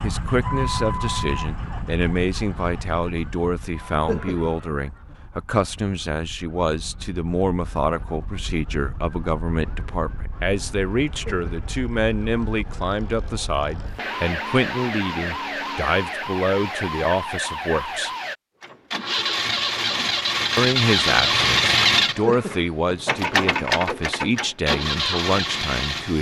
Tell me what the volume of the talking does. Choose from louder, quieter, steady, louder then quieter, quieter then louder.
steady.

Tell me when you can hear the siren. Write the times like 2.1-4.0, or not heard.
0.0-18.4.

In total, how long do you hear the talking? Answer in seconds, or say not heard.
24 s.